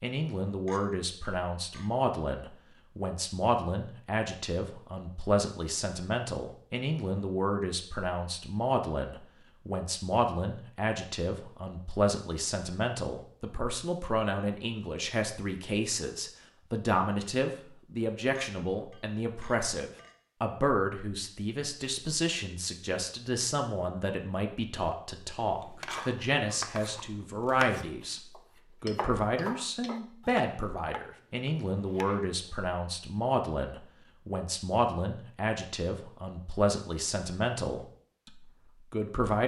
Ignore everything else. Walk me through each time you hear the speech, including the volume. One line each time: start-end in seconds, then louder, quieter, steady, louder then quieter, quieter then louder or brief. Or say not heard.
0.0-28.2 steady
28.8-39.4 steady.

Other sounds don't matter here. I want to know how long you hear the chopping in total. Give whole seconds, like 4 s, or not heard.
7 s.